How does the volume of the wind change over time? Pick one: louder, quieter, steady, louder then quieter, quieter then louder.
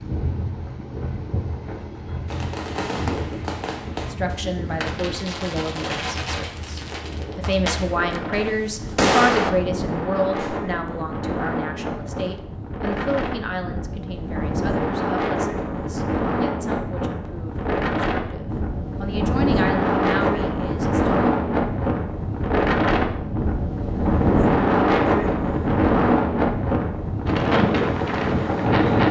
louder.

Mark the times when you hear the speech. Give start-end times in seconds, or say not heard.
4.1-21.3.